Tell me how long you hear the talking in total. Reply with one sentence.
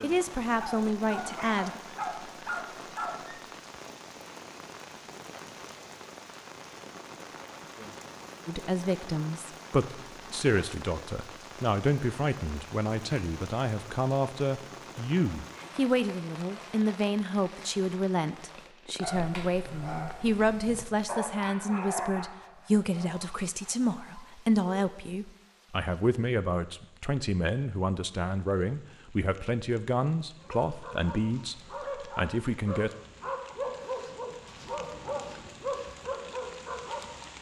You can hear the talking for 26 seconds altogether.